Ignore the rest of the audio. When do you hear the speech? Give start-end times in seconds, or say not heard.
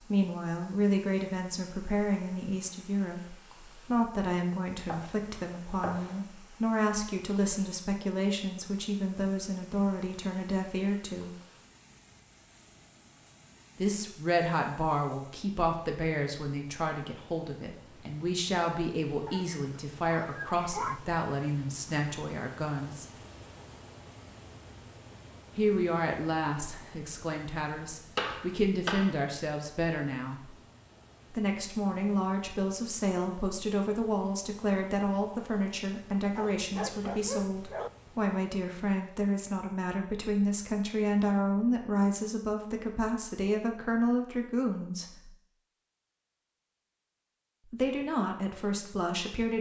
0.0-11.3, 13.8-23.1, 25.6-30.6, 31.3-45.3, 47.7-49.5.